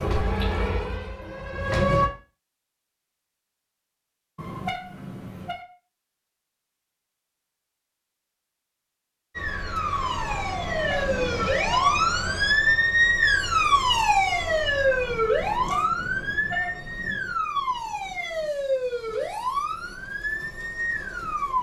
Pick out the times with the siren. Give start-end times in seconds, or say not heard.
0.0-2.1, 9.3-21.5.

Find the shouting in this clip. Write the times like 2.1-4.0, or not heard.
not heard.